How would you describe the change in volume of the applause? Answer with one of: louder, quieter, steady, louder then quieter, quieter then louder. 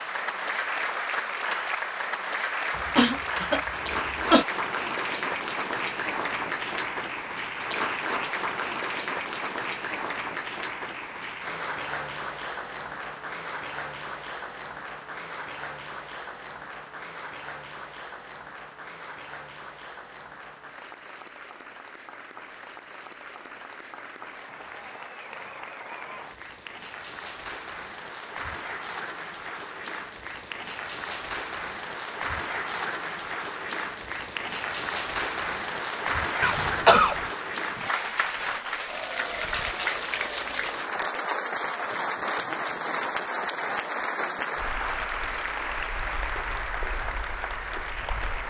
quieter then louder.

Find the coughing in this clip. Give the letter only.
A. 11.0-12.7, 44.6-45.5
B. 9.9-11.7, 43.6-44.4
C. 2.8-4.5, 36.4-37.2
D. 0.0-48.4
C.